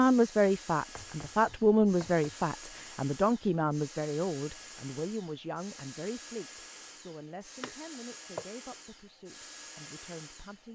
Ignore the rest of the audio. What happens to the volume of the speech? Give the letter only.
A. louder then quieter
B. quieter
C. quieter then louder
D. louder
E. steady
B.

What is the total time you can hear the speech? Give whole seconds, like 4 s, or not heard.
11 s.